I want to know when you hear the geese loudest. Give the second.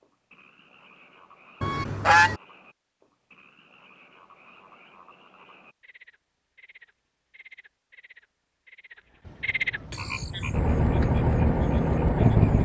2 s.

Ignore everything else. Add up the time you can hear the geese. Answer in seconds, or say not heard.
2 s.